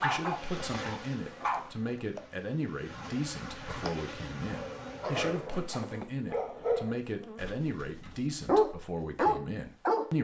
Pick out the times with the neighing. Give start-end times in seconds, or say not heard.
not heard.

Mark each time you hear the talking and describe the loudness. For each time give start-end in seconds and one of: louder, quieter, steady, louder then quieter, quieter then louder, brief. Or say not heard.
0.0-10.1 steady.